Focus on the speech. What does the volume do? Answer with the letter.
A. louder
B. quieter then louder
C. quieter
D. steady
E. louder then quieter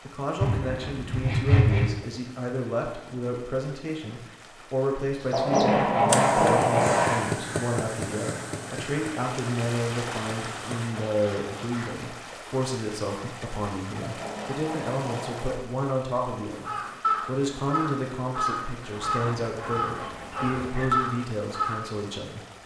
D.